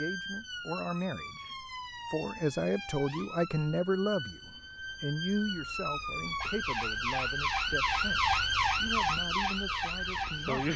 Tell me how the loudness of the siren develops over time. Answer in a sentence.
The loudness of the siren goes up.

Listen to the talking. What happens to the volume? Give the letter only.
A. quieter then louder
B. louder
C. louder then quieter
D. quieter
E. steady
C.